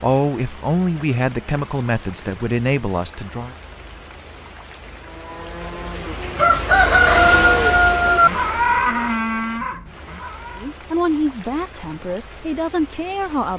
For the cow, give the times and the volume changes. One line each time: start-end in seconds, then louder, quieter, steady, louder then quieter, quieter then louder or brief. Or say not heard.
5.0-10.8 louder then quieter.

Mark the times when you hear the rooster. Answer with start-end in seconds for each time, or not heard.
6.3-8.3.